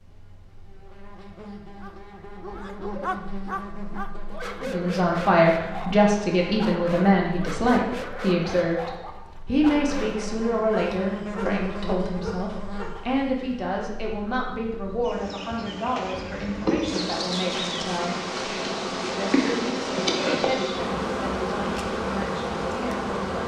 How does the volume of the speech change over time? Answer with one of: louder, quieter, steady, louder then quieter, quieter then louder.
quieter.